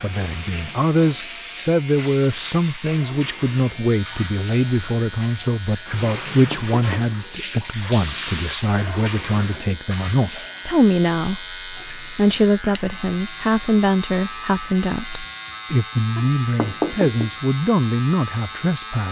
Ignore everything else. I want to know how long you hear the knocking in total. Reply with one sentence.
You can hear the knocking for 2 seconds altogether.